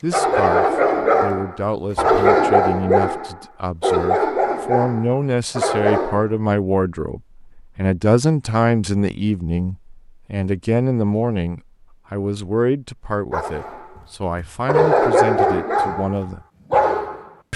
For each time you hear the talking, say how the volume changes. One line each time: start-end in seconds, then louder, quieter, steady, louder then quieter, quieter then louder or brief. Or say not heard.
0.0-16.4 louder then quieter.